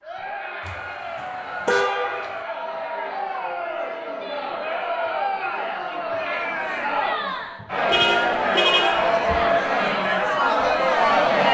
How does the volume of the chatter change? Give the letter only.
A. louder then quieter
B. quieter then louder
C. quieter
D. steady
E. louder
E.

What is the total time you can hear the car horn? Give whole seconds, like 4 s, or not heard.
3 s.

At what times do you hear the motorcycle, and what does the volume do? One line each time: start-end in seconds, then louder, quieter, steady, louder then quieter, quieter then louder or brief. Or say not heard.
not heard.